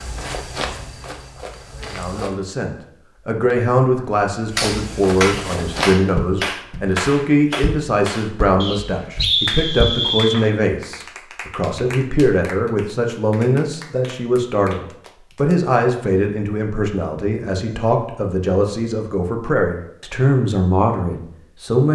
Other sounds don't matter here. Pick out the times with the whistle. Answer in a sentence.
You can hear the whistle from 8.6 to 10.4 s.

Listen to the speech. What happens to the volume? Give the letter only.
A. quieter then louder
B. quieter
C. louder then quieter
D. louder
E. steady
E.